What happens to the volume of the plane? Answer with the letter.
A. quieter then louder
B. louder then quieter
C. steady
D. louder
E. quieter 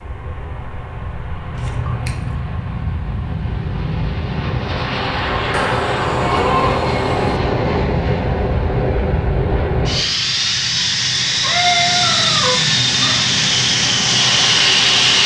D.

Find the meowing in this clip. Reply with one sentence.
The meowing can be heard from 1.5 to 2.4 s, from 5.5 to 7.4 s and from 11.4 to 13.2 s.